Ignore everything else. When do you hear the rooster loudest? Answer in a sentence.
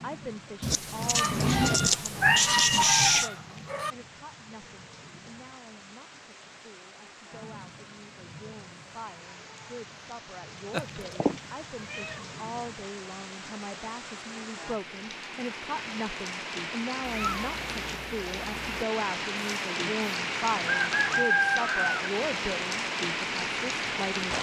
The volume of the rooster peaks at 21 seconds.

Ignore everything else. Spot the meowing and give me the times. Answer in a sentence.
You can hear the meowing from 0.6 to 3.3 s, from 10.7 to 12.2 s and from 17.0 to 18.9 s.